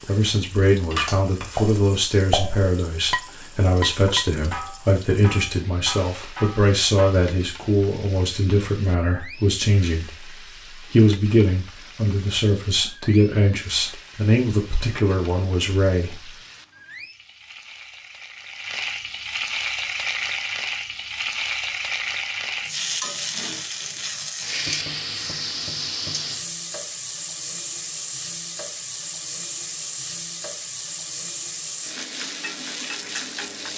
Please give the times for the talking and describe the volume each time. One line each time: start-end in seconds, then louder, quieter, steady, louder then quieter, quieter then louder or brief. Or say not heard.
0.1-16.3 steady.